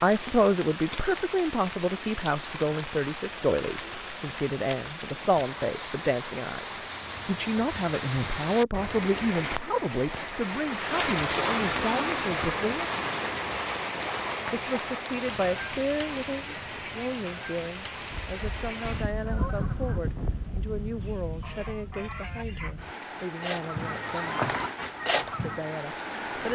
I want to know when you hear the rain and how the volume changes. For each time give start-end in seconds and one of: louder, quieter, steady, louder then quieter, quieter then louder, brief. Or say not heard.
0.0-26.5 louder then quieter.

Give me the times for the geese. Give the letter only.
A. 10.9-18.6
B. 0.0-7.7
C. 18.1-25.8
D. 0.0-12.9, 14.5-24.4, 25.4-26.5
C.